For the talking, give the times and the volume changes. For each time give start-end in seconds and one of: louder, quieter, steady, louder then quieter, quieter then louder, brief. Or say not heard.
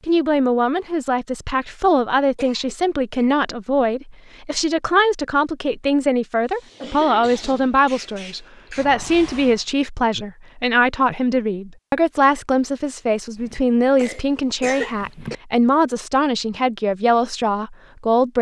0.1-18.3 steady.